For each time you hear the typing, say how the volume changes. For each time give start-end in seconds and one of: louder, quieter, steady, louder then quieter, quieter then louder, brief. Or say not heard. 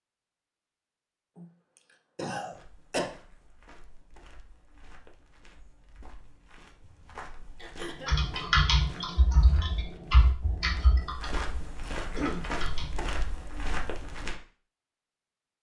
8.1-13.1 quieter.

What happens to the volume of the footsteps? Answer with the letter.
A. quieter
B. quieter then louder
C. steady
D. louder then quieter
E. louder
E.